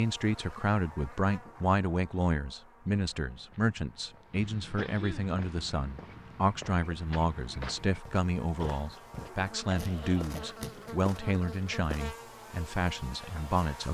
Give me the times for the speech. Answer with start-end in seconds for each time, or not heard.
0.0-13.8.